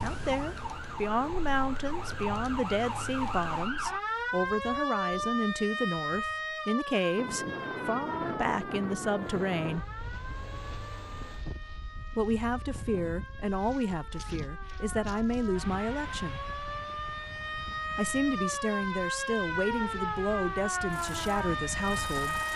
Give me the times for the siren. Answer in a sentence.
The siren can be heard from 0.0 to 22.5 s.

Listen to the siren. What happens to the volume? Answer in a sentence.
The loudness of the siren goes down, then up.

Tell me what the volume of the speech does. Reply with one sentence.
The loudness of the speech stays about the same.